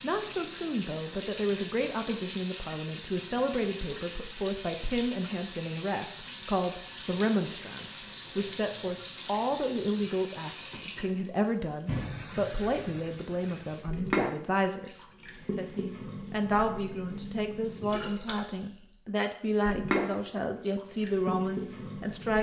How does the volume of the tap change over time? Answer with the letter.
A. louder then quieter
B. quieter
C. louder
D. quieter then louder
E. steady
E.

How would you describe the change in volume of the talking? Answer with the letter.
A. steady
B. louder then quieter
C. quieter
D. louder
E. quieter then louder
A.